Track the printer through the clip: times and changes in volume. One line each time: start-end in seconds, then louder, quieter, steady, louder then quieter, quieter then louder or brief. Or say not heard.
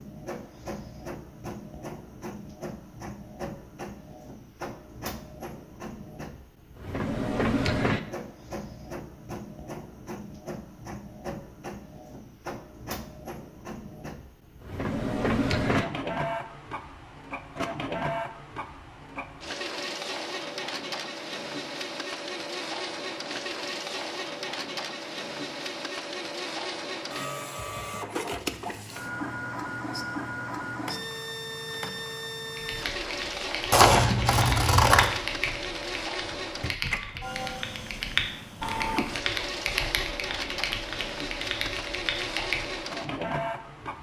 0.0-43.9 steady.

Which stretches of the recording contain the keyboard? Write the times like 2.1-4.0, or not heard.
32.5-42.9.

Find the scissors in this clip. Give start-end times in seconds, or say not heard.
33.7-35.2.